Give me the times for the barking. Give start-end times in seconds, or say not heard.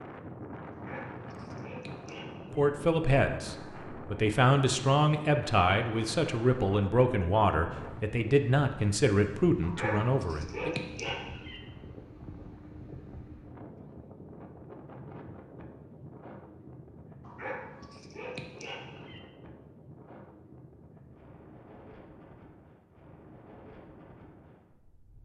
0.7-2.7, 9.6-11.6, 17.2-19.2.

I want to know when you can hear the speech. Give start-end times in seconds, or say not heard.
2.5-10.8.